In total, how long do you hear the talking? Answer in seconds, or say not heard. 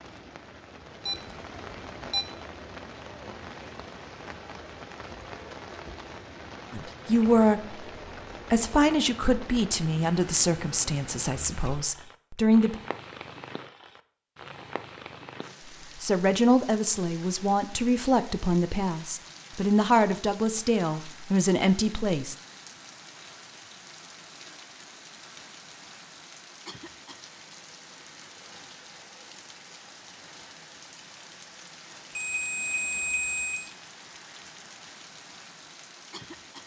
12 s.